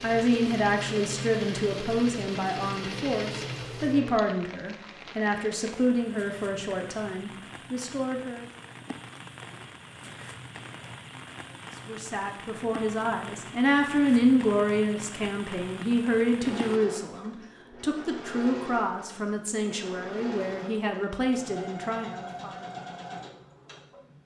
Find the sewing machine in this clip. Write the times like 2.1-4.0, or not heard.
0.0-4.2, 16.4-24.2.